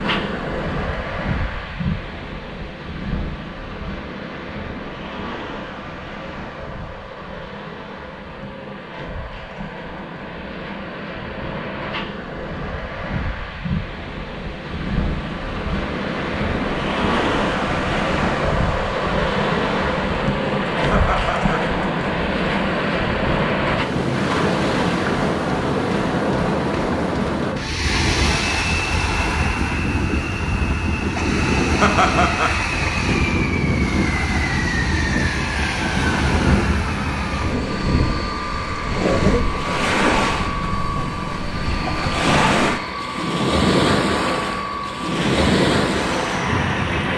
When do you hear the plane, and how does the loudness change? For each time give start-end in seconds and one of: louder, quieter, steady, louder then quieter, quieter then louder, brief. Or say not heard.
28.2-47.1 steady.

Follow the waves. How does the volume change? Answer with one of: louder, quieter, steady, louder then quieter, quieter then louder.
louder.